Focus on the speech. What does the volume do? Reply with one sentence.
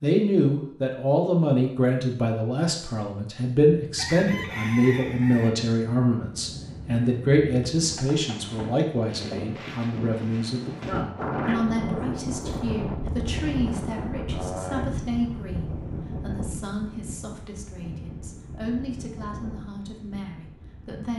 The volume of the speech goes down.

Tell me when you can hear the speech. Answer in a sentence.
The speech can be heard from 0.0 to 21.1 s.